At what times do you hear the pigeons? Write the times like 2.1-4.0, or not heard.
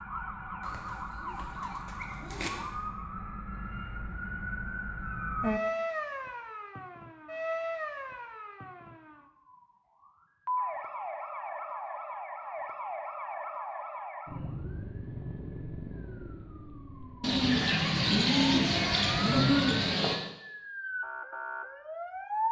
0.6-2.5, 17.2-20.2.